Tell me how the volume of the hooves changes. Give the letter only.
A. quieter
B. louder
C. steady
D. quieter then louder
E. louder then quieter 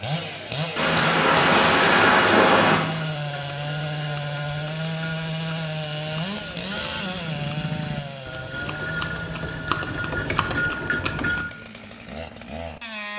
B.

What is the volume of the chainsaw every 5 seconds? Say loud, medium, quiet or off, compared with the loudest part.
loud, loud, medium.